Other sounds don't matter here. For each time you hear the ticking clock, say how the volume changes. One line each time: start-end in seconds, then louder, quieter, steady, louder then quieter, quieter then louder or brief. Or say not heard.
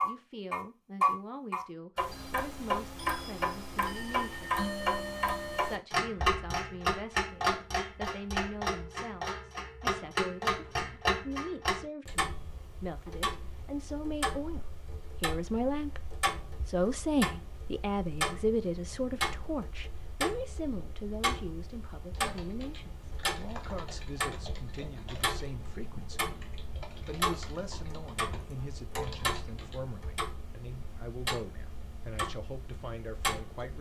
0.0-33.7 quieter.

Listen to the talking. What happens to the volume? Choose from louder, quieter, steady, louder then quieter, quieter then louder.
louder then quieter.